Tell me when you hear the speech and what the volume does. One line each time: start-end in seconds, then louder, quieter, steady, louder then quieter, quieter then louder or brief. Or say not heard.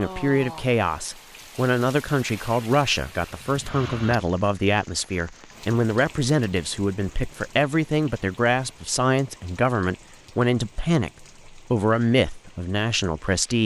0.0-13.6 steady.